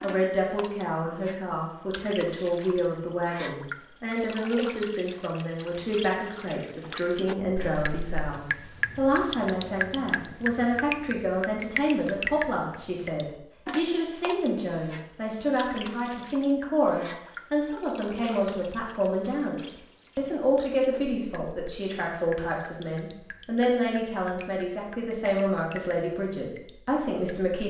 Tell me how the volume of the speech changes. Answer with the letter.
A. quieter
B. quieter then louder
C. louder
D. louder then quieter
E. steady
E.